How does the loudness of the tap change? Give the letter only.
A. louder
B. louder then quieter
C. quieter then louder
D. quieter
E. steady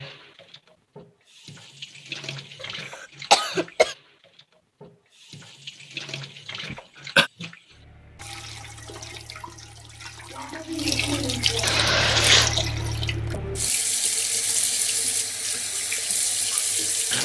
A.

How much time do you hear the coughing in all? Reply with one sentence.
You can hear the coughing for 3 seconds altogether.